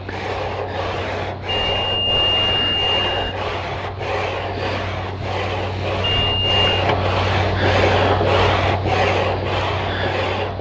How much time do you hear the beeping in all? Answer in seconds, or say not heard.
2 s.